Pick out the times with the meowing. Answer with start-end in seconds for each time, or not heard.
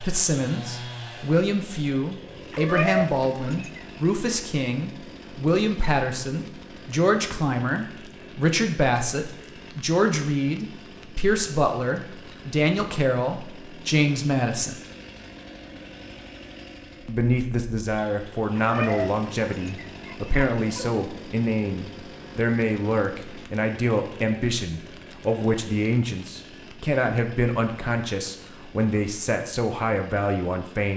2.5-3.8, 18.6-20.9.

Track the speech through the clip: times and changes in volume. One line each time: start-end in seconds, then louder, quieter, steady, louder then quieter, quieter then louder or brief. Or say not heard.
0.0-14.8 steady
17.1-30.9 steady.